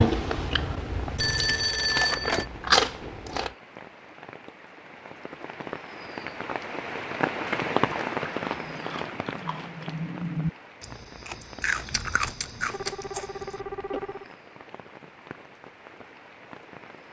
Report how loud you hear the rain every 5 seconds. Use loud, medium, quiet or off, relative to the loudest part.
quiet, loud, quiet, quiet.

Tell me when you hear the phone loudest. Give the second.
2 s.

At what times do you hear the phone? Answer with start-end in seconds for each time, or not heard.
1.1-2.5, 12.2-14.3.